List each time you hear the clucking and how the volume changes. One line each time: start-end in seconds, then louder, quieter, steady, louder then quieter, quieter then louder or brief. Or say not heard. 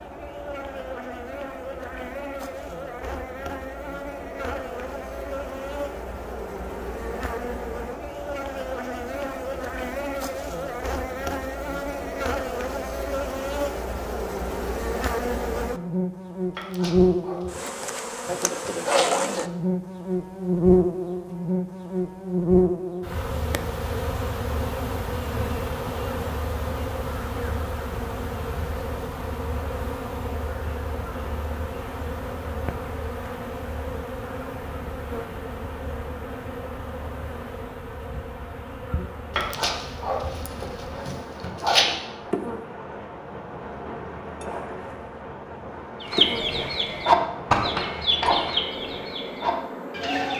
46.0-50.3 louder then quieter.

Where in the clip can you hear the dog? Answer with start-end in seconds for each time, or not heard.
16.6-19.4, 39.4-41.9.